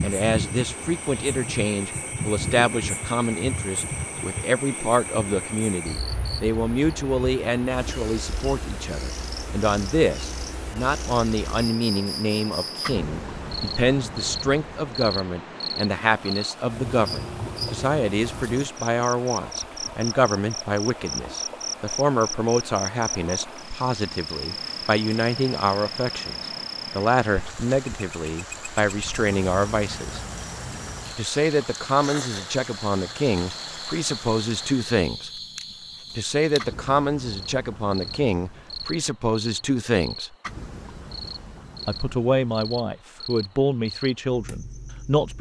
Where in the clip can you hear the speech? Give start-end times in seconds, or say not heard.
0.0-26.4, 26.9-30.2, 31.1-35.3, 36.1-40.4, 41.9-45.3.